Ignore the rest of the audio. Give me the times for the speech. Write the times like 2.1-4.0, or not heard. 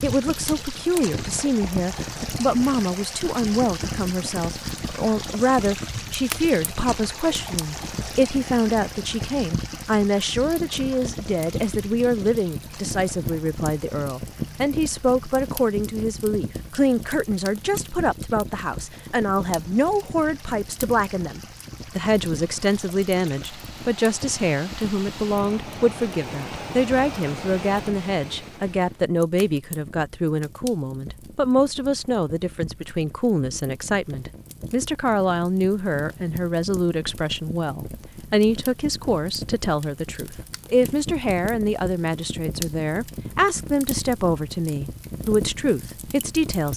0.0-46.7.